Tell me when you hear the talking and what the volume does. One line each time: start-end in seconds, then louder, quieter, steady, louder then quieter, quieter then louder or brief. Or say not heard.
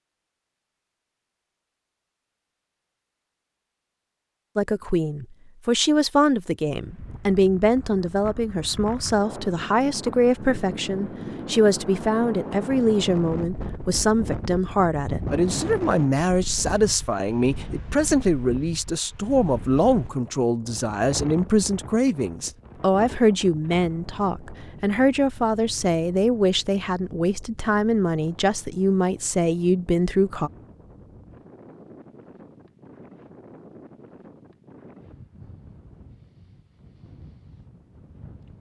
4.5-30.5 steady.